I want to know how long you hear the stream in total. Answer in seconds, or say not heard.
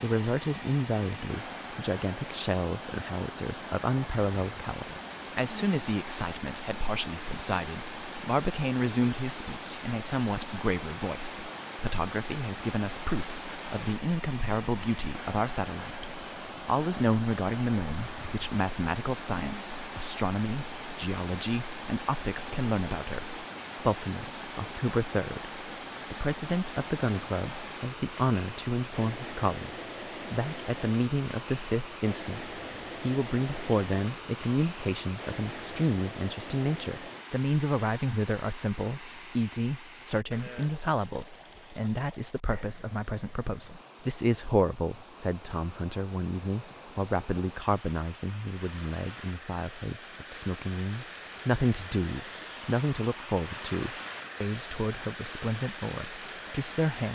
57 s.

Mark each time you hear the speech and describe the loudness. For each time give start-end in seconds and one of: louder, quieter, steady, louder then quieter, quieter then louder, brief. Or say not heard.
0.0-57.1 steady.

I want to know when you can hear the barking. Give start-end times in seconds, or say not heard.
not heard.